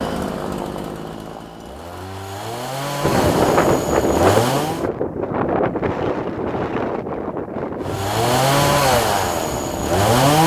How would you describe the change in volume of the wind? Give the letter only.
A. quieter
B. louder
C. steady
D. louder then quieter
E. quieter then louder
A.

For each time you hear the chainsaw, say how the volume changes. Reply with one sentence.
You can hear the chainsaw from 0.0 to 4.8 s, getting quieter then louder; and briefly from 7.8 to 10.4 s.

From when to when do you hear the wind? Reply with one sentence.
You can hear the wind from 3.0 to 10.4 s.